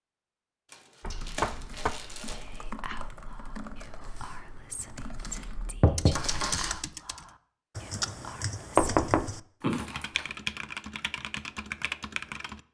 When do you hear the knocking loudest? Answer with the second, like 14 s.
9 s.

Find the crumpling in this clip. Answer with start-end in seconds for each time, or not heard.
0.7-2.6, 6.1-6.8, 9.6-10.2.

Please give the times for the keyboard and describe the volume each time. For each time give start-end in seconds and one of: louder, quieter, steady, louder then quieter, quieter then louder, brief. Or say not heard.
1.0-12.6 louder.